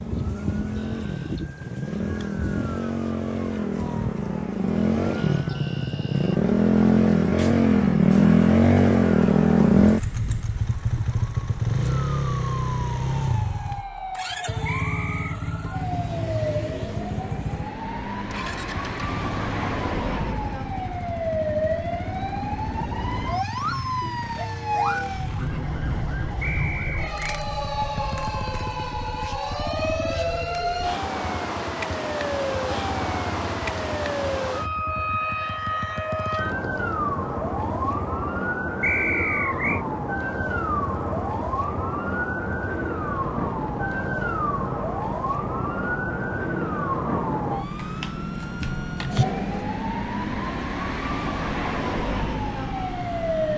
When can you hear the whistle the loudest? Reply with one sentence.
The volume of the whistle peaks at 39 seconds.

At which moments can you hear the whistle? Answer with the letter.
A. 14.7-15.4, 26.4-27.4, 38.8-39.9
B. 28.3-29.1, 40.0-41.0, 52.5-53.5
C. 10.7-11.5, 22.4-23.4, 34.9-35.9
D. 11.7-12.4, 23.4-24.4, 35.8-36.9
A.